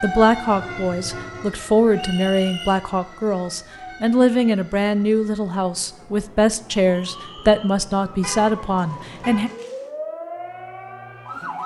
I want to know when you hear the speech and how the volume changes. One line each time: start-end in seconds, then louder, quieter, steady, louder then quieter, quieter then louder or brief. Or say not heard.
0.0-9.5 steady.